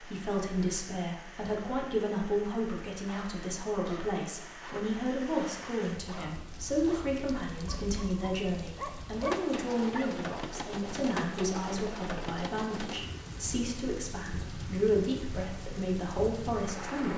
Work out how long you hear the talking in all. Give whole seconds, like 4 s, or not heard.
17 s.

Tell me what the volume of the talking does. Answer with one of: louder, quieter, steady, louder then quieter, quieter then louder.
steady.